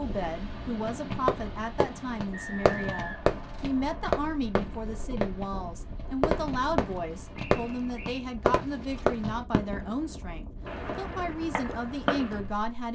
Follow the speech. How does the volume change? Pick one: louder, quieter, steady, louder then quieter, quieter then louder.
steady.